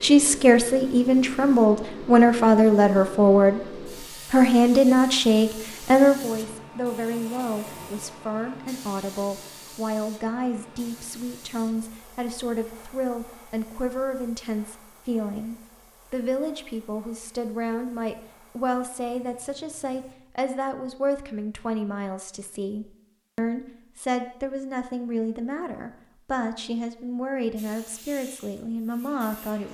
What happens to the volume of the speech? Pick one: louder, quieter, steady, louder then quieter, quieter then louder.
quieter.